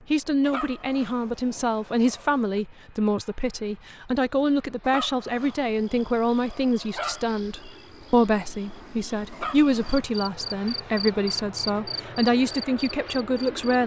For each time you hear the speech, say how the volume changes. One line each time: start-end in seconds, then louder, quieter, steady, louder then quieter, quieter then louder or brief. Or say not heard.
0.1-13.8 steady.